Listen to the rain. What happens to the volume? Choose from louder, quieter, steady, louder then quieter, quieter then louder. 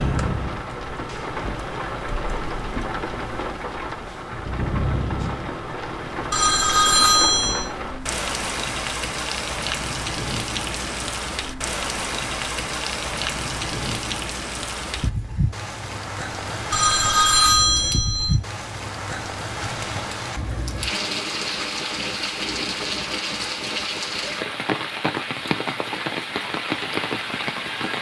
steady.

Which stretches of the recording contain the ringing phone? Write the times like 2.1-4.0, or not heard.
6.3-7.7, 16.7-18.4.